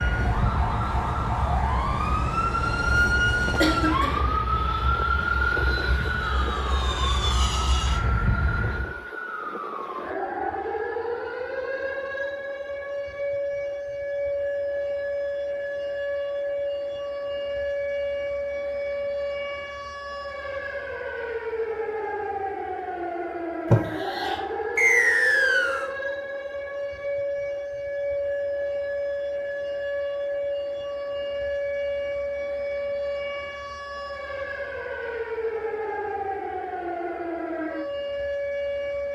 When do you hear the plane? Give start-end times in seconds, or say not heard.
0.0-8.9.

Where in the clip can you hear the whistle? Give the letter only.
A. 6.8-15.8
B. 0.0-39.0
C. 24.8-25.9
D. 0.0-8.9
C.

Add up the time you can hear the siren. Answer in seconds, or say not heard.
39 s.